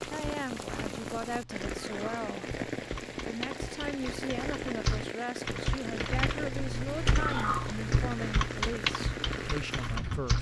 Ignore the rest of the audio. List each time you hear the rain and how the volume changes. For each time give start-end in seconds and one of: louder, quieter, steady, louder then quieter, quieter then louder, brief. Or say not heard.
0.0-10.3 steady.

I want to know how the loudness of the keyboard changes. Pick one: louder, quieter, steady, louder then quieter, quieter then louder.
louder.